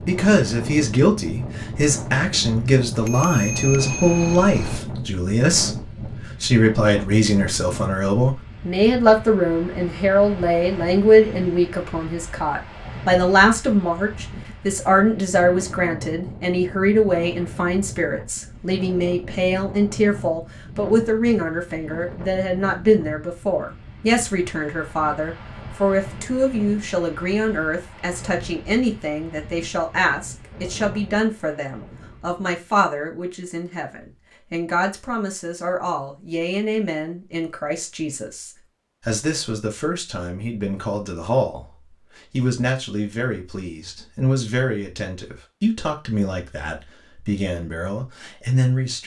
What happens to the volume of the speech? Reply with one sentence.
The loudness of the speech goes down.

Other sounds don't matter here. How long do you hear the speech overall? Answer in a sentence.
The speech can be heard for 49 seconds in total.